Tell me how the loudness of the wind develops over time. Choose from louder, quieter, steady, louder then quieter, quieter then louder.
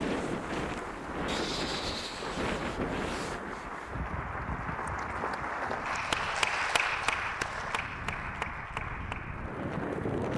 quieter then louder.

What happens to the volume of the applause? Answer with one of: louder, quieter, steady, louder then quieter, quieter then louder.
louder then quieter.